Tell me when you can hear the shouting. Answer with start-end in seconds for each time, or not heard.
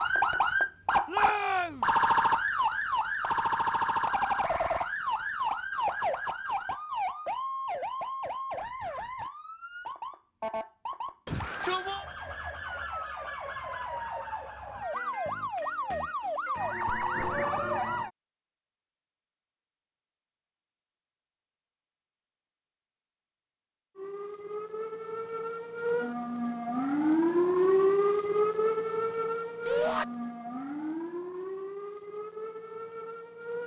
1.1-1.9, 11.2-12.1, 29.6-30.1.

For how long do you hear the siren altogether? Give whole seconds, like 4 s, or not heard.
28 s.